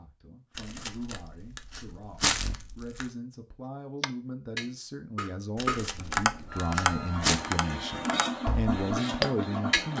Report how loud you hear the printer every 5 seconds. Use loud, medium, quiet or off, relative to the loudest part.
off, loud.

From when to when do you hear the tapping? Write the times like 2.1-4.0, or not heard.
4.0-9.9.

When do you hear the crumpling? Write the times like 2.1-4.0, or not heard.
0.6-3.0, 5.5-7.4.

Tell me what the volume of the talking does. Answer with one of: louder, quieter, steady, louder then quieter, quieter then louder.
louder.